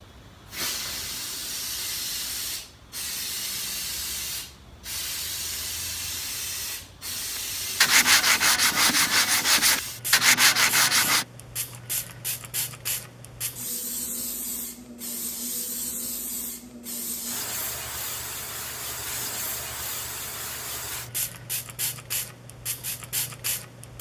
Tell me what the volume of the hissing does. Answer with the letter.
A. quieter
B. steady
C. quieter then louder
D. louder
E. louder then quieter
B.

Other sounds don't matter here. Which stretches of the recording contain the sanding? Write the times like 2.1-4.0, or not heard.
7.3-11.2.